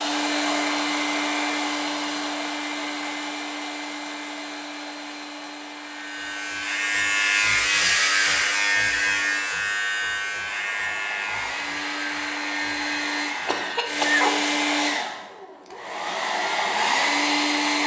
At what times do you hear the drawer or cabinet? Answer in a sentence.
You can't hear the drawer or cabinet here.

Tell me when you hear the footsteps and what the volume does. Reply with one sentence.
The footsteps can't be heard in this clip.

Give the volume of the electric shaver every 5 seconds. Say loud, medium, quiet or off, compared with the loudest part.
off, loud, medium, off.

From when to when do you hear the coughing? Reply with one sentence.
You can hear the coughing from 13.4 to 14.5 s.